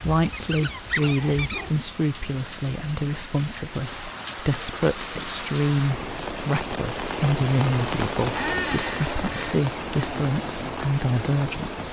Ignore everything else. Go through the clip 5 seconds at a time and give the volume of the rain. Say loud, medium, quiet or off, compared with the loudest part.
medium, loud, loud.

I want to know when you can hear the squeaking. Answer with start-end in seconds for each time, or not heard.
0.3-1.7, 8.3-9.6.